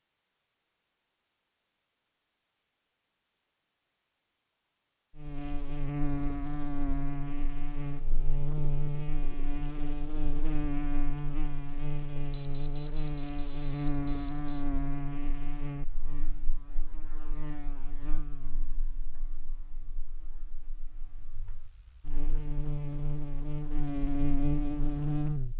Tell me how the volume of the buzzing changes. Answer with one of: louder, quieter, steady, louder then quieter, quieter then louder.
quieter then louder.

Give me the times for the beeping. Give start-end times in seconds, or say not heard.
12.3-14.7.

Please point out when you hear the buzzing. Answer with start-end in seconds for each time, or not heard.
5.2-25.5.